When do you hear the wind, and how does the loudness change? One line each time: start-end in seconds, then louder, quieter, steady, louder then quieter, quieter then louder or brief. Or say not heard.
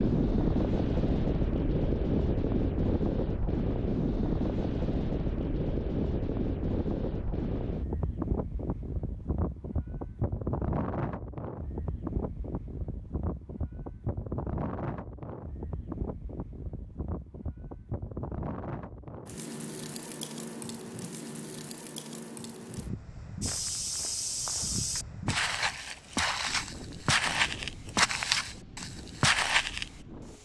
0.0-30.3 quieter.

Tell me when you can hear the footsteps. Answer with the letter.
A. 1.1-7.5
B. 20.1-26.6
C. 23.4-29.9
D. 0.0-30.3
C.